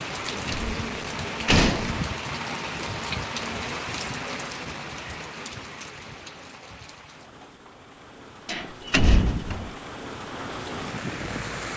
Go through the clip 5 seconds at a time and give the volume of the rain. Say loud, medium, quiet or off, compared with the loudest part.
loud, medium, loud.